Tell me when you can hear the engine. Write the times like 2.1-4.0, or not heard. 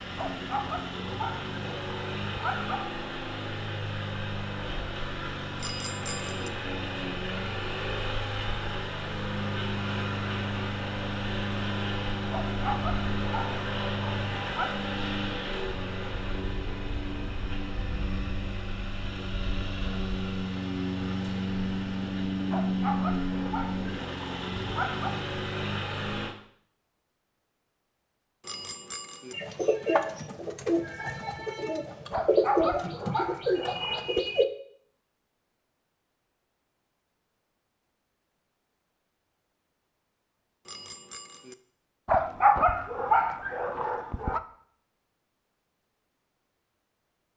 0.0-26.4.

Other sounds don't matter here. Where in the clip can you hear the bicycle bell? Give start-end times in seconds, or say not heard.
5.5-6.5, 28.4-29.4, 40.6-41.5.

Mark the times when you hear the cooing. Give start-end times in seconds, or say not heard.
29.3-34.5.